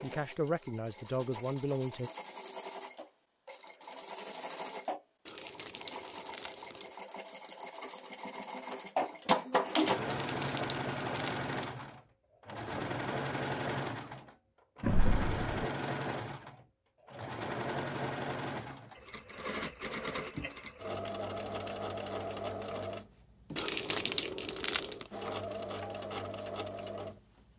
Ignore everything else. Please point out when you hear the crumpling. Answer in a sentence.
You can hear the crumpling from 5.2 to 7.0 s, from 10.1 to 11.8 s and from 23.6 to 25.1 s.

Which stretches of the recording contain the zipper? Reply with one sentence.
The zipper can be heard from 14.8 to 15.7 s.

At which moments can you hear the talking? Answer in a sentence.
You can hear the talking from 0.0 to 2.1 s.